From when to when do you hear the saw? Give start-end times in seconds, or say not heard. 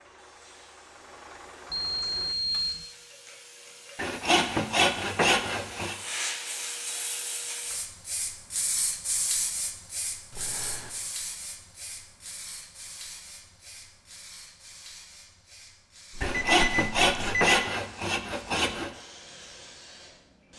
4.0-6.0, 16.2-18.9.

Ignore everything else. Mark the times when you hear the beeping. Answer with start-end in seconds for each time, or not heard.
1.7-2.9, 10.3-11.1, 16.1-17.5.